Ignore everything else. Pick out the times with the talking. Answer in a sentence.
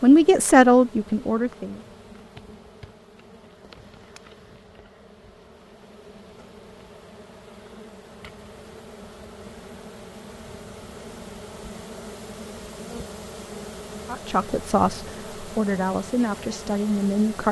The talking can be heard from 0.0 to 1.8 s and from 14.1 to 17.4 s.